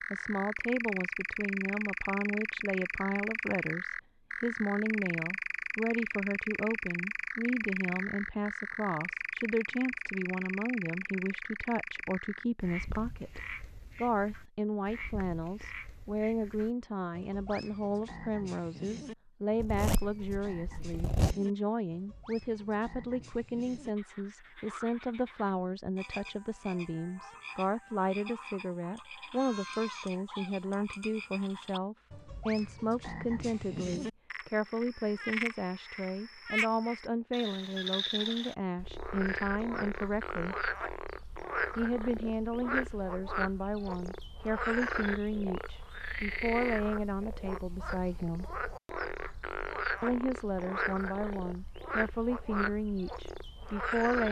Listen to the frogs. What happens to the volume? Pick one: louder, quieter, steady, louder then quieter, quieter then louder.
quieter then louder.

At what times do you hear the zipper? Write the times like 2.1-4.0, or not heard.
19.6-21.4.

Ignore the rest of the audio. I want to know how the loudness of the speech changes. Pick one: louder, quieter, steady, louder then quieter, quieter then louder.
steady.